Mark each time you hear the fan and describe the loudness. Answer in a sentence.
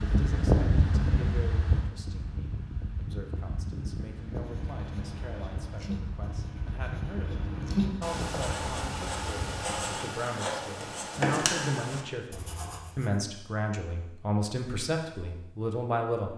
The fan can be heard from 0.0 to 9.8 s, getting quieter.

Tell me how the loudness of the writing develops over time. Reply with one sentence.
The volume of the writing goes up.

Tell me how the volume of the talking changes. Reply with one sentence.
The loudness of the talking goes up.